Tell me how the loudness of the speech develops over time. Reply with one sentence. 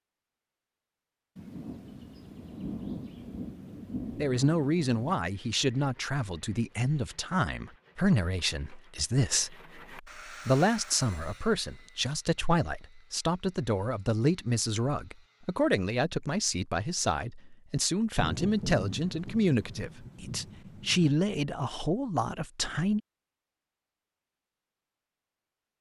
The loudness of the speech stays about the same.